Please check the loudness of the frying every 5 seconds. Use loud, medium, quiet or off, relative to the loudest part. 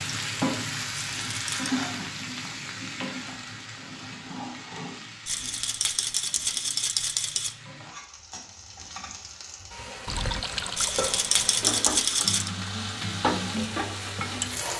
loud, quiet, loud.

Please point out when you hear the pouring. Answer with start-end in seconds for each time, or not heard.
10.1-11.1.